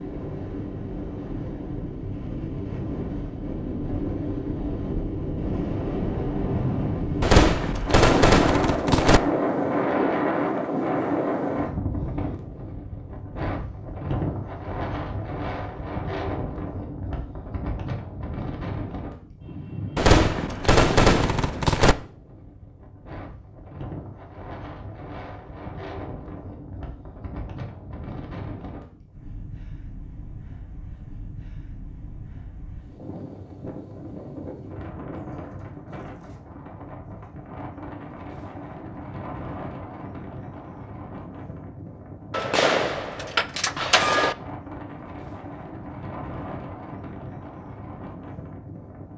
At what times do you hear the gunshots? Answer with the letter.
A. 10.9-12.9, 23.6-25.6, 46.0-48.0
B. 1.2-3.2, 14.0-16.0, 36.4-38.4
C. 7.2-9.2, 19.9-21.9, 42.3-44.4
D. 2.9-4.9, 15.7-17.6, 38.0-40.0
C.